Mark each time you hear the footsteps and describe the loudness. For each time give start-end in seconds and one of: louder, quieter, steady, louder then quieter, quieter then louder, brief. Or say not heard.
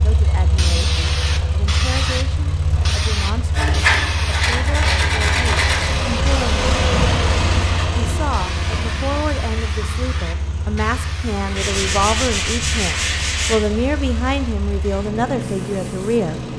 not heard.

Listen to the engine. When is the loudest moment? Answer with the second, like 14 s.
7 s.